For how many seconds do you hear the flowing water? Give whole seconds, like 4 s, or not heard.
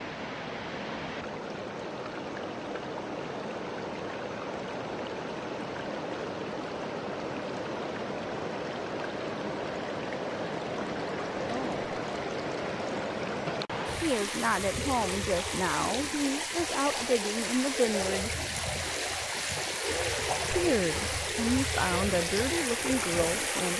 24 s.